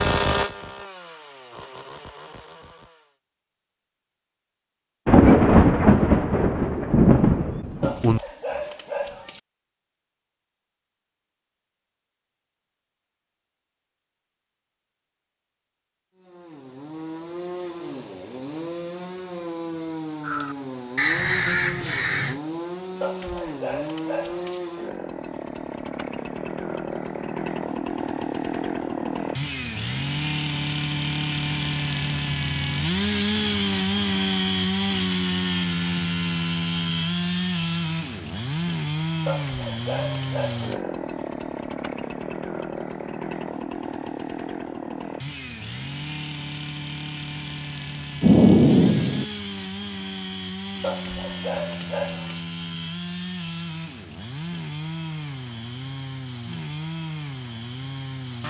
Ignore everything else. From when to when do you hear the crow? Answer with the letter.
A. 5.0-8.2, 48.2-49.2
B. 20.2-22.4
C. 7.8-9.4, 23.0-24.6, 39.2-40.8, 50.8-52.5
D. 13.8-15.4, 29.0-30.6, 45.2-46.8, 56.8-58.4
B.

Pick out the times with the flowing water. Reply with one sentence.
You can't hear the flowing water here.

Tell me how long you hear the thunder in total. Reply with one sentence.
The thunder can be heard for 4 seconds in total.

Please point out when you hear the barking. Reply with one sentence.
The barking can be heard from 7.8 to 9.4 s, from 23.0 to 24.6 s, from 39.2 to 40.8 s and from 50.8 to 52.5 s.